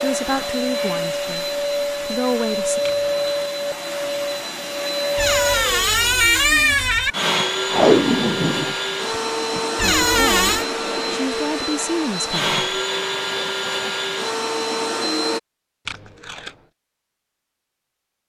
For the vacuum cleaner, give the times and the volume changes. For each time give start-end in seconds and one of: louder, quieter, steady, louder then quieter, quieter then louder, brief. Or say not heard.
0.0-15.4 steady.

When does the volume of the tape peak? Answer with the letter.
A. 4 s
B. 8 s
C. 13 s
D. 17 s
B.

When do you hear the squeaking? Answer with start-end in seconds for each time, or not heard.
5.2-7.2, 9.8-10.7.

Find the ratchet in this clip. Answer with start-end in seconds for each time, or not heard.
not heard.